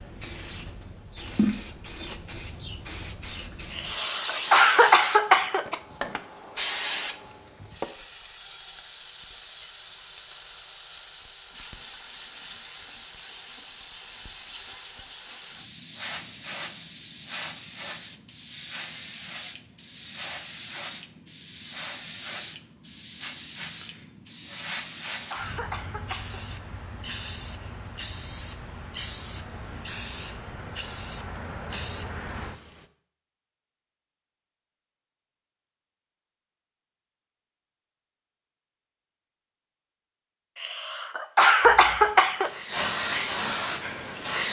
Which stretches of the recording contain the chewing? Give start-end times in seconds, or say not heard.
not heard.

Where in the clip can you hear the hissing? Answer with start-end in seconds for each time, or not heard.
0.0-32.9, 41.6-44.4.